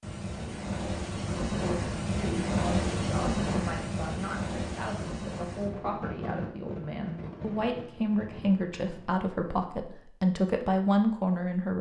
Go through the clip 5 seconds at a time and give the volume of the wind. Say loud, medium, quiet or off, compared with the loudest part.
loud, medium, off.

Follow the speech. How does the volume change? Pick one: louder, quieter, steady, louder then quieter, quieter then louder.
louder.